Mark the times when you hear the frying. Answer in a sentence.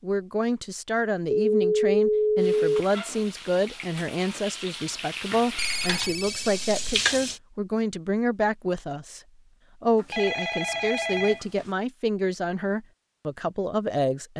The frying can be heard from 2.4 to 7.4 s.